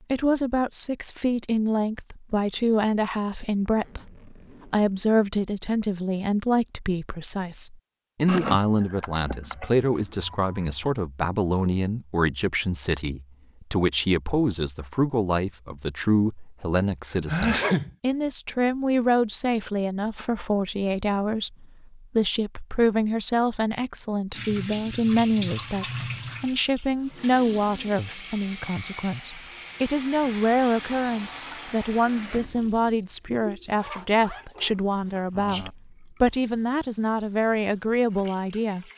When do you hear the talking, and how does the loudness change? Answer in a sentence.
The talking can be heard from 0.1 to 38.9 s, at a steady volume.